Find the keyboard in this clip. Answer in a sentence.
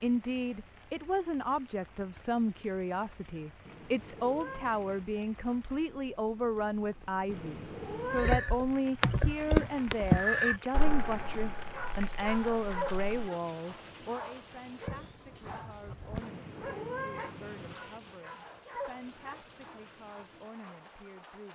You can hear the keyboard from 8.2 to 13.3 s.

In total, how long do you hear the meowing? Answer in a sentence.
You can hear the meowing for 4 seconds altogether.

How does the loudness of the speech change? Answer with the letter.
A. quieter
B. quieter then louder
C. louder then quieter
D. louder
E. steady
A.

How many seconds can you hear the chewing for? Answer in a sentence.
The chewing can't be heard in this clip.